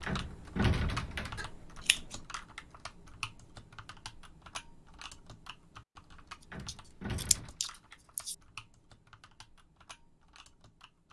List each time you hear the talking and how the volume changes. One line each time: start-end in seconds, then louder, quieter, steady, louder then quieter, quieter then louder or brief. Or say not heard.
not heard.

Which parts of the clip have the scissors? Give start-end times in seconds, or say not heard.
1.4-2.2, 6.7-8.3.